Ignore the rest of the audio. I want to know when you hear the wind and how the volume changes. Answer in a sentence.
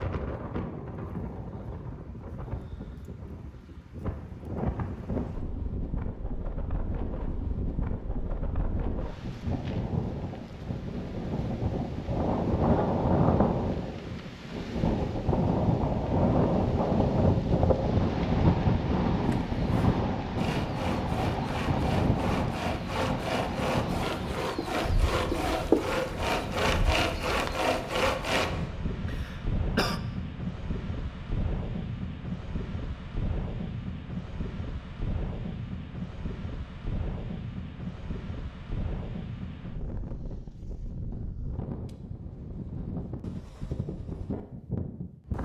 The wind can be heard from 0.0 to 45.4 s, getting louder then quieter.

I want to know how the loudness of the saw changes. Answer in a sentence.
The volume of the saw goes up.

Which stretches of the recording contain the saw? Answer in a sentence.
The saw can be heard from 19.2 to 28.5 s.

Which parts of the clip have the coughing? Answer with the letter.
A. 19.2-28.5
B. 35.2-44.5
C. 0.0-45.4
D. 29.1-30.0
D.